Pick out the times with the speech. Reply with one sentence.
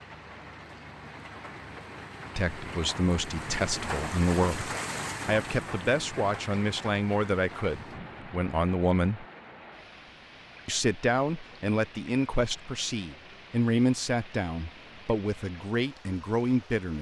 The speech can be heard from 2.4 to 9.2 s and from 10.7 to 16.9 s.